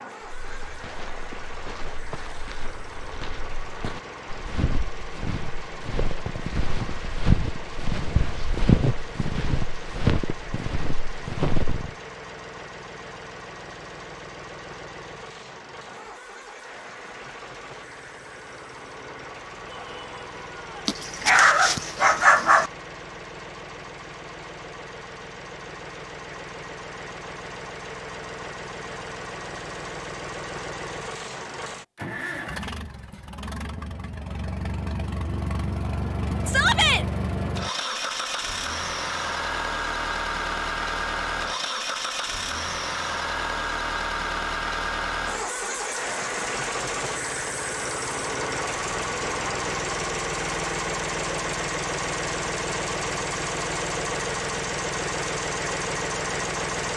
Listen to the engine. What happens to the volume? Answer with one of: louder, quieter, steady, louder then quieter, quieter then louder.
louder.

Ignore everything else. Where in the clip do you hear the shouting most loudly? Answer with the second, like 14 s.
37 s.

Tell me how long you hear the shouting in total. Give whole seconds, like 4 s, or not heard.
2 s.